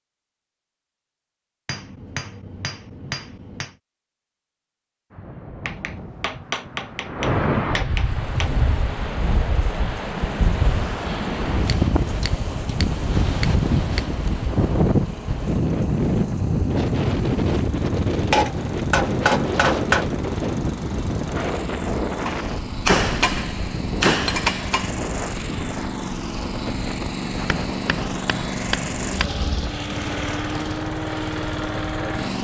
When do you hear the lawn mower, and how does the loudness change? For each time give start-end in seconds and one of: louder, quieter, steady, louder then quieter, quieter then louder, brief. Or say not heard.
8.1-32.4 louder.